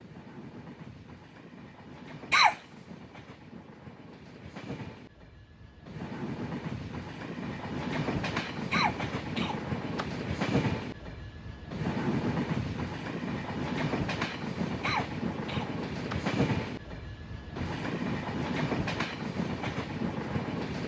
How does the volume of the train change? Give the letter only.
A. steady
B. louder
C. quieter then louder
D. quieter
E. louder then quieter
B.